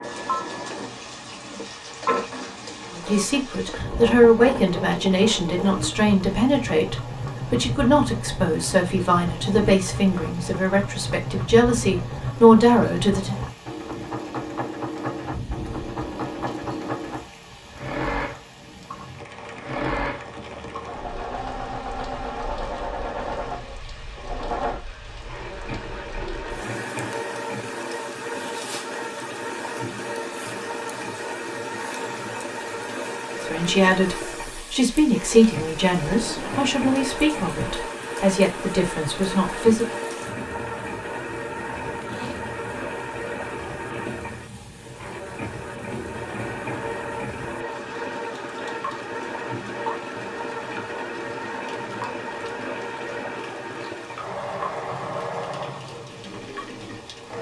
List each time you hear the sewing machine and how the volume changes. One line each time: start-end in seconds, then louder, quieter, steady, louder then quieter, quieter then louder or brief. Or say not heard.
0.0-57.3 steady.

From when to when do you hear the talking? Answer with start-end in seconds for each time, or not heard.
2.9-13.3, 33.4-39.9.